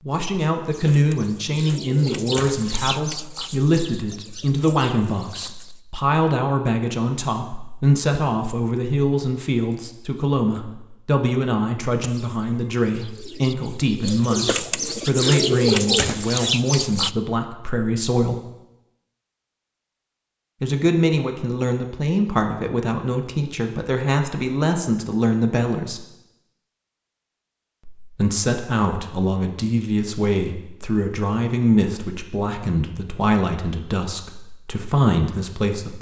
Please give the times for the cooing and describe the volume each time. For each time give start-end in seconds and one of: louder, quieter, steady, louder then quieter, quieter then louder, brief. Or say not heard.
0.7-5.8 louder then quieter
12.0-17.1 louder.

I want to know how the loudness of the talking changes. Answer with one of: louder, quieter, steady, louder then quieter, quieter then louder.
steady.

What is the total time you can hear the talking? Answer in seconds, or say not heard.
32 s.